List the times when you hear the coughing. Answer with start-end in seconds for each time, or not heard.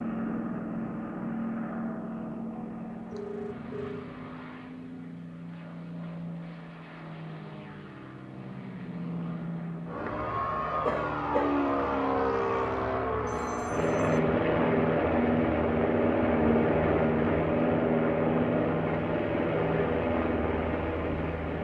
10.8-11.5.